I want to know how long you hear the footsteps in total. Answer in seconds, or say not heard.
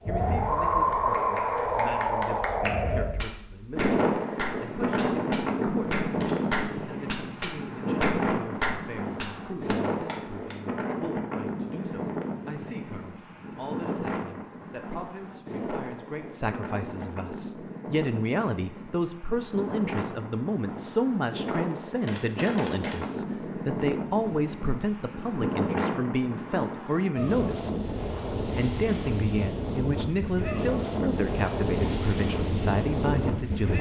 not heard.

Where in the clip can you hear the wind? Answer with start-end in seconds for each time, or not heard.
0.0-33.7.